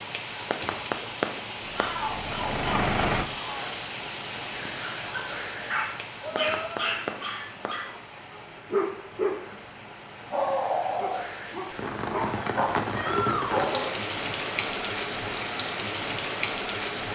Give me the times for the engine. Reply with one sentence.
You can hear the engine from 1.6 to 3.2 s.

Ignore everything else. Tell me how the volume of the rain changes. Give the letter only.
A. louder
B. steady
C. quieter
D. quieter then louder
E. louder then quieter
D.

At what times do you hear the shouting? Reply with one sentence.
You can hear the shouting from 1.8 to 3.7 s, from 6.2 to 6.9 s and from 12.9 to 13.9 s.